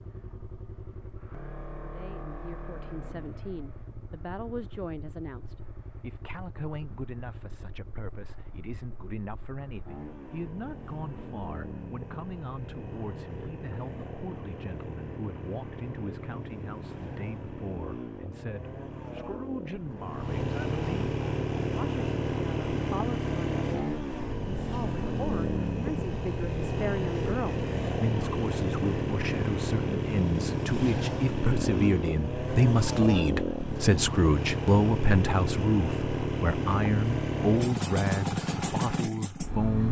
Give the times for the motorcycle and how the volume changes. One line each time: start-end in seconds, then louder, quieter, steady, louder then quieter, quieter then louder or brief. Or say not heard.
0.0-39.8 louder.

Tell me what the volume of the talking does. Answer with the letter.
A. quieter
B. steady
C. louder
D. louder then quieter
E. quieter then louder
C.